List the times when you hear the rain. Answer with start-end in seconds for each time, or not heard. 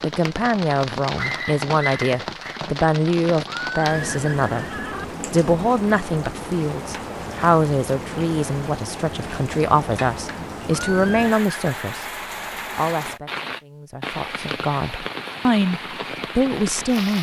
0.0-17.1.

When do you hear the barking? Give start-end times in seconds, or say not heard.
1.1-2.6.